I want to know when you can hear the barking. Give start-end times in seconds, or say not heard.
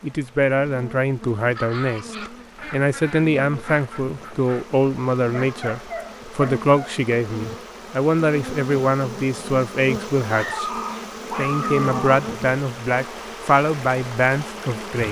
1.6-2.4, 5.3-7.0, 10.3-12.2.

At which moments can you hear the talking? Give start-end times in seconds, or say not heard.
0.0-10.7, 11.3-15.0.